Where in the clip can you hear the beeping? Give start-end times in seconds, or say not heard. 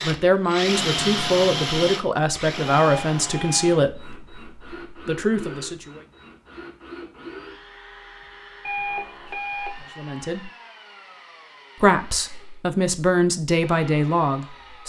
2.6-3.8, 8.7-9.8.